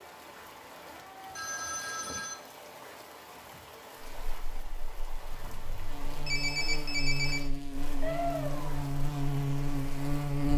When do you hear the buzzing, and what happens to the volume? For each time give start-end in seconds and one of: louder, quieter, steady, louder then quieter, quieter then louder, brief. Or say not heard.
4.0-10.5 louder.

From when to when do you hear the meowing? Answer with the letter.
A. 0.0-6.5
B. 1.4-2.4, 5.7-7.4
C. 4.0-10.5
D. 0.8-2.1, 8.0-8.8
D.